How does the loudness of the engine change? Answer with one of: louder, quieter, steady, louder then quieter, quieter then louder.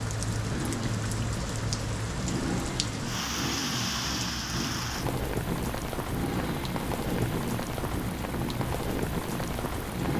steady.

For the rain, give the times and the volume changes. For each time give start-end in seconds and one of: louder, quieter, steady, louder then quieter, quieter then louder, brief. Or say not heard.
0.0-10.1 steady.